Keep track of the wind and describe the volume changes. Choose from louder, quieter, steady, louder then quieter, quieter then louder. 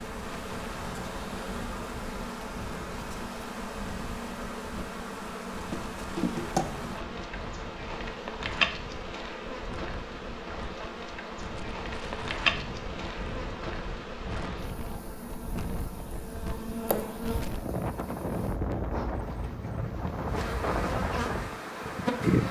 louder.